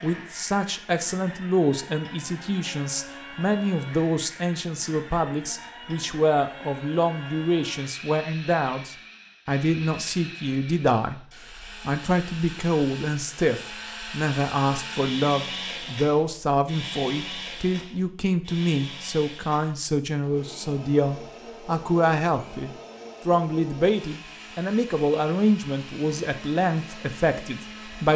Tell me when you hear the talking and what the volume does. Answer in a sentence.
The talking can be heard from 0.0 to 11.2 s, at a steady volume; and from 11.8 to 28.1 s, at a steady volume.